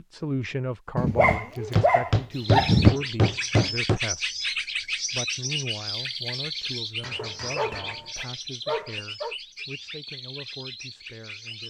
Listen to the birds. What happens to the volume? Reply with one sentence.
The volume of the birds goes down.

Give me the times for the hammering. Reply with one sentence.
The hammering can be heard from 1.8 to 4.0 s and from 7.0 to 8.1 s.